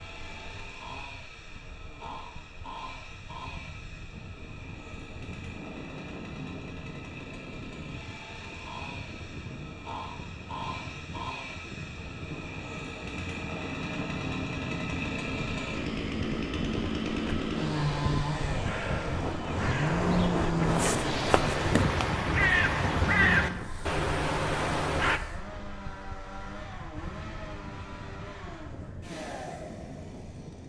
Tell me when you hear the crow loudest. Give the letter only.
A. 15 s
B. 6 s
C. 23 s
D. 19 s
C.